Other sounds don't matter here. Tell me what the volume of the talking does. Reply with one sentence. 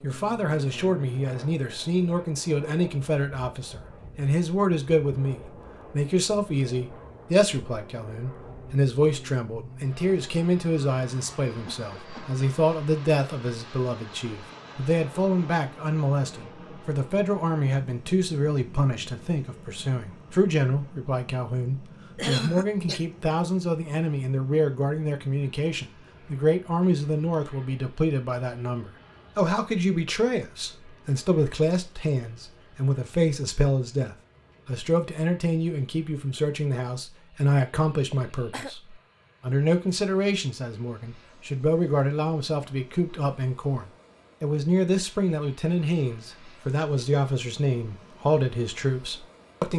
The loudness of the talking stays about the same.